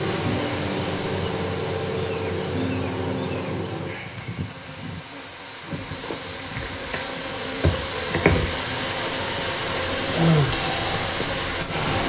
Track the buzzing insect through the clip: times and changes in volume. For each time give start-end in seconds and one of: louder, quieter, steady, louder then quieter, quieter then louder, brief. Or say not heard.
0.0-12.0 quieter then louder.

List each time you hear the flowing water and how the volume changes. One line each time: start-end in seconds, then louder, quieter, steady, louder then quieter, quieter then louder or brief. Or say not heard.
0.0-12.0 quieter then louder.